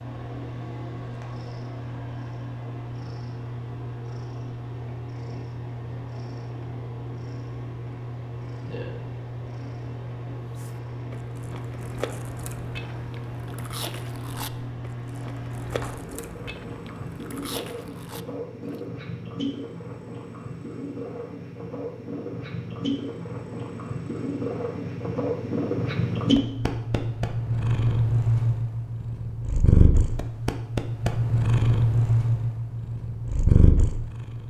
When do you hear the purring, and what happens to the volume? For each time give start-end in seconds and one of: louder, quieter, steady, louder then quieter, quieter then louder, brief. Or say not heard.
0.0-34.4 louder.